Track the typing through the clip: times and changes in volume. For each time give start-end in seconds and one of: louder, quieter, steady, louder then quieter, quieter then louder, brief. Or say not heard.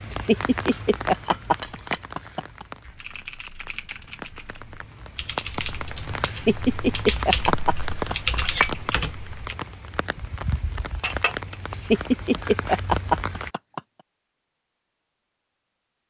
2.9-9.3 louder.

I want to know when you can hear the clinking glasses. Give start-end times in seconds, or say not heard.
1.1-2.0, 8.2-8.8, 11.0-11.6.